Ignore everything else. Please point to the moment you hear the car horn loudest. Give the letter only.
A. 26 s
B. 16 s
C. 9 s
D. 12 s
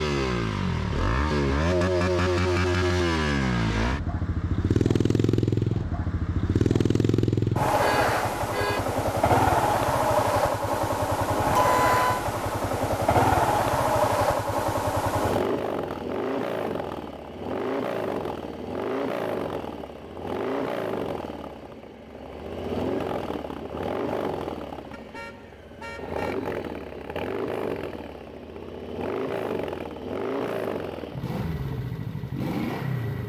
D.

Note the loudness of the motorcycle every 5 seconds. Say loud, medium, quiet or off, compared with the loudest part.
loud, loud, loud, medium, medium, medium, medium.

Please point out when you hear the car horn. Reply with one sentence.
The car horn can be heard from 7.8 to 8.8 s, from 11.5 to 12.2 s and from 24.9 to 26.4 s.